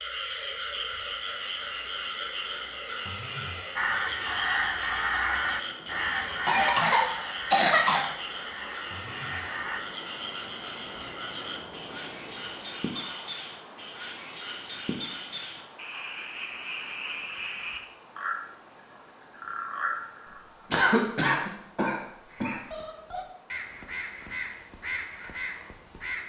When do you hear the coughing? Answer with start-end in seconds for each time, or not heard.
6.5-8.1, 20.7-22.6.